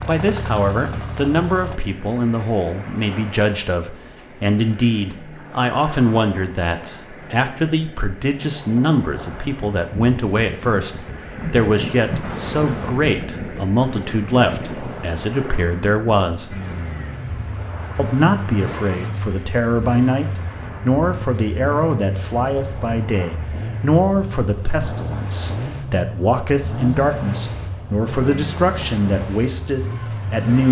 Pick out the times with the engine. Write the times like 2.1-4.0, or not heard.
0.0-1.8, 16.5-30.6.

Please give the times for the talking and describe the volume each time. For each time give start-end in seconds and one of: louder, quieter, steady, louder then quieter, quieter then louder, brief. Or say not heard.
0.1-16.6 steady
17.9-30.6 steady.